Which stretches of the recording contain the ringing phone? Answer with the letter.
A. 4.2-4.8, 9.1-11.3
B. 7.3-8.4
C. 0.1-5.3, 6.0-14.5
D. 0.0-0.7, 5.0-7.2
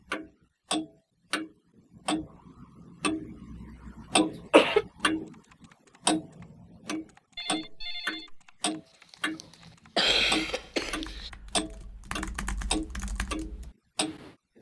B.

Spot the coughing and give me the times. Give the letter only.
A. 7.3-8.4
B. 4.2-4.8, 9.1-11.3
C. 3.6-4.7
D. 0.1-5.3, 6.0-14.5
B.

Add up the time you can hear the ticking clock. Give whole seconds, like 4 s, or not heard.
14 s.